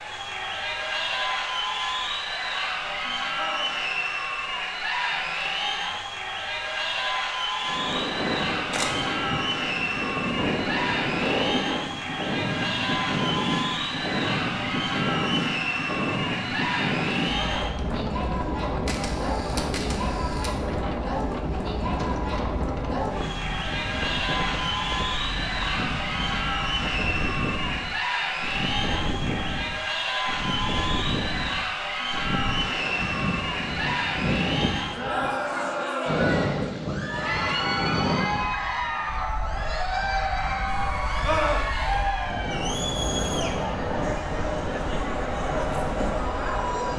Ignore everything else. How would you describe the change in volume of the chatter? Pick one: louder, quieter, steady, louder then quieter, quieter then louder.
steady.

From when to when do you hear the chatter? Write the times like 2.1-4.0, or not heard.
0.0-46.9.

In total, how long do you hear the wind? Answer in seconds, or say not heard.
39 s.